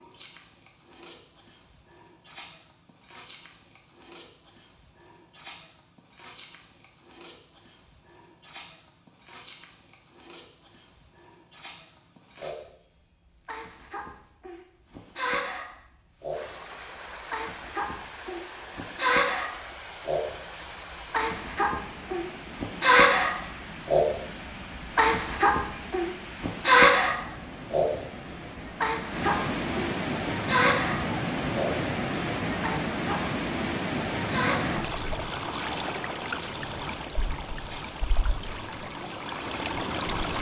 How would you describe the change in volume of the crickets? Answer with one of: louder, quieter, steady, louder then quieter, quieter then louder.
louder then quieter.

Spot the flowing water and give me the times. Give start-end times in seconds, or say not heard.
16.3-40.3.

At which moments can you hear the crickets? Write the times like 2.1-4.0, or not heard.
0.0-40.3.